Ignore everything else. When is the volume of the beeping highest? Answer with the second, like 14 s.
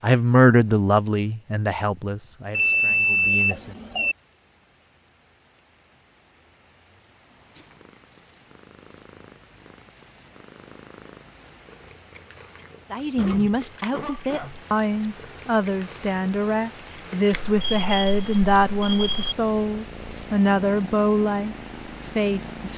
3 s.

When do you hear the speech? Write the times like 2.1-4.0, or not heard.
0.0-3.8, 12.9-22.7.